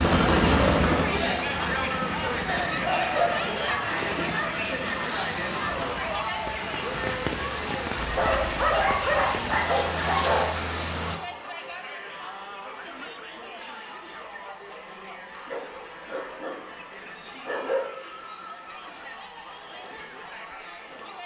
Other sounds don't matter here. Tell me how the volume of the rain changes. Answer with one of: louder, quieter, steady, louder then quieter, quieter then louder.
louder.